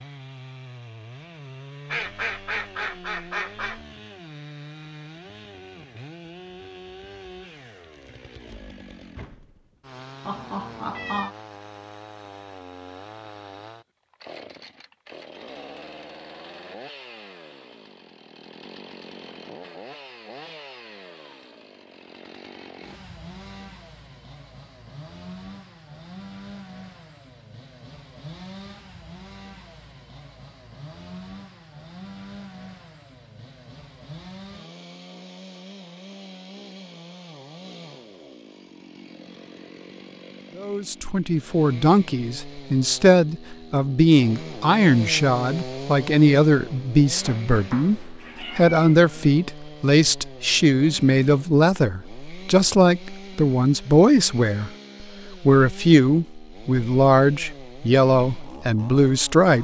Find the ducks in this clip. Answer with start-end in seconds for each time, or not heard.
1.9-3.8.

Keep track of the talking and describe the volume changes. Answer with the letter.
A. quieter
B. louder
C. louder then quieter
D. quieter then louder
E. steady
E.